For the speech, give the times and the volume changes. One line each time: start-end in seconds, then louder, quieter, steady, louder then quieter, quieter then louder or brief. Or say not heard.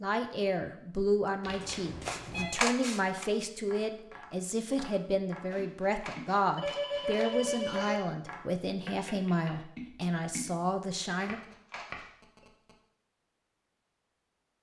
0.0-11.4 steady.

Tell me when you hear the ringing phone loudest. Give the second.
7 s.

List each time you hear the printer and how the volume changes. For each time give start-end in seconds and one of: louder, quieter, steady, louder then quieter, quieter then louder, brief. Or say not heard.
not heard.